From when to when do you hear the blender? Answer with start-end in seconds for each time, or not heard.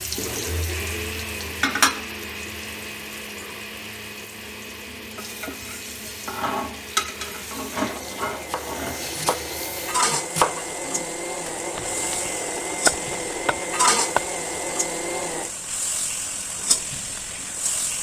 0.1-15.5.